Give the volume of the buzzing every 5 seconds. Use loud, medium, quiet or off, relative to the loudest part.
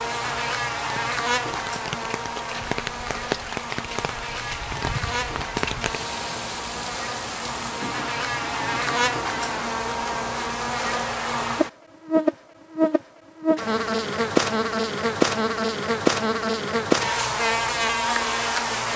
medium, medium, loud, loud.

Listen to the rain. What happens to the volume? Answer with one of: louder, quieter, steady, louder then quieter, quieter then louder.
quieter.